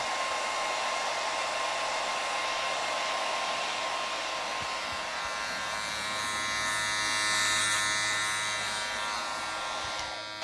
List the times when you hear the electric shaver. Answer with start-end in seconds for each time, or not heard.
0.2-10.3.